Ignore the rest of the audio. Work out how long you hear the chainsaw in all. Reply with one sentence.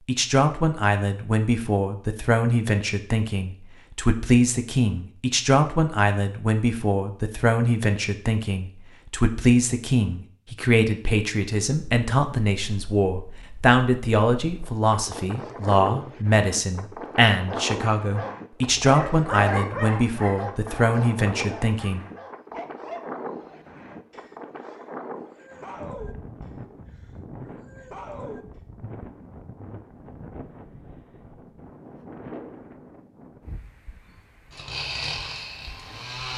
You can hear the chainsaw for 2 seconds altogether.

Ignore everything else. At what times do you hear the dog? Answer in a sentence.
The dog can be heard from 16.9 to 28.4 s.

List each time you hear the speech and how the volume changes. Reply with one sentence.
The speech can be heard from 0.1 to 22.0 s, at a steady volume.